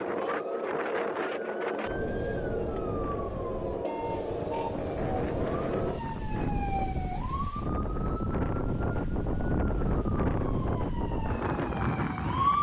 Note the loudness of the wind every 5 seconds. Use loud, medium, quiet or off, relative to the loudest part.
medium, loud, loud.